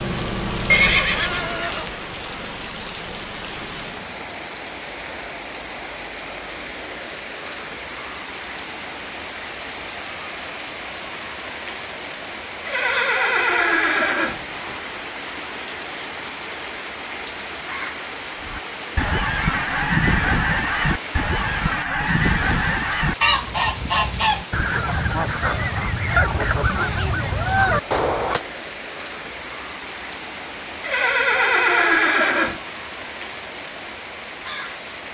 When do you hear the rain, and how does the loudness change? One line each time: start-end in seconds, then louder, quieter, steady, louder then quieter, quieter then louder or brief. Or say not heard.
0.0-35.0 steady.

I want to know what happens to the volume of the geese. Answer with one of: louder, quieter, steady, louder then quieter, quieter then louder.
steady.